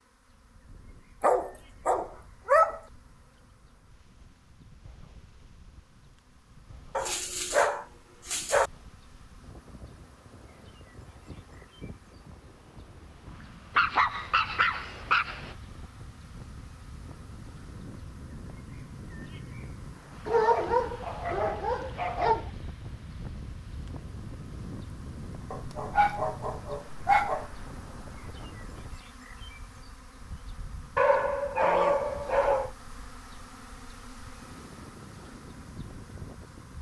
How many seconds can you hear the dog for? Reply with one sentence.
You can hear the dog for 11 seconds altogether.